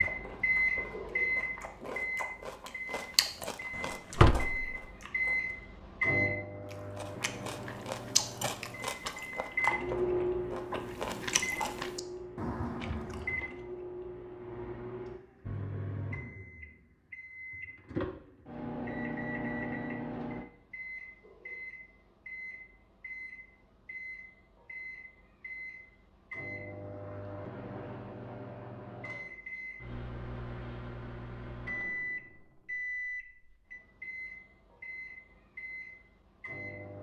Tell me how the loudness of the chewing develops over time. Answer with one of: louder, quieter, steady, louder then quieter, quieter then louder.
louder.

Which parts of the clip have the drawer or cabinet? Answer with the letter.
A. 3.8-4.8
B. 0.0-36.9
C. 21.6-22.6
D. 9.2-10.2
A.